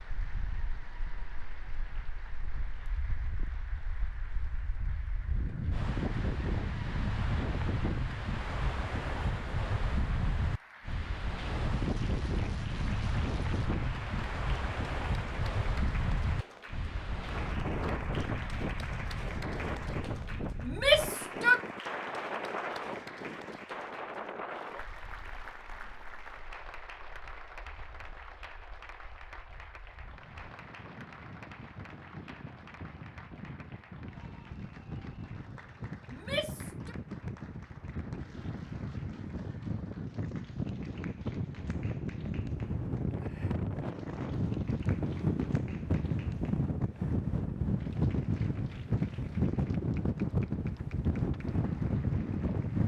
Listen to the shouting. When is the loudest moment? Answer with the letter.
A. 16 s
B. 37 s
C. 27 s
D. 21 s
D.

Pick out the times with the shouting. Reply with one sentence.
You can hear the shouting from 20.6 to 21.6 s and from 36.1 to 37.0 s.